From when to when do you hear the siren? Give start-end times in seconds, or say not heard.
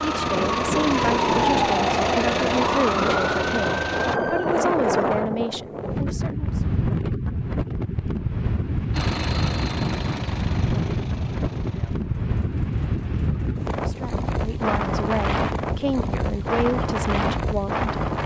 0.0-4.7.